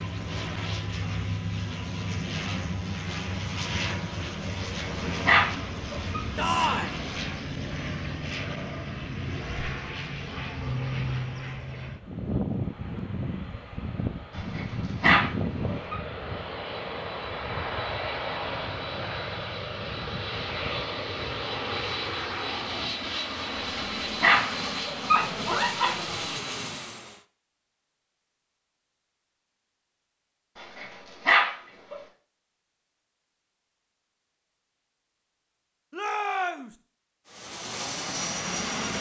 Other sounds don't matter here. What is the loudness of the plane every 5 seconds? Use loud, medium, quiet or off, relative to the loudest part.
loud, loud, loud, loud, loud, loud, off, loud.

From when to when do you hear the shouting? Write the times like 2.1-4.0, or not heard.
6.3-7.0, 35.9-36.8.